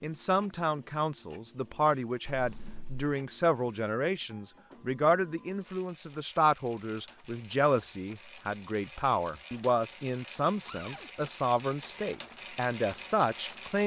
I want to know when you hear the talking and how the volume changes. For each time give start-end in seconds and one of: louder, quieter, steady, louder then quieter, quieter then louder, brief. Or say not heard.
0.0-13.8 steady.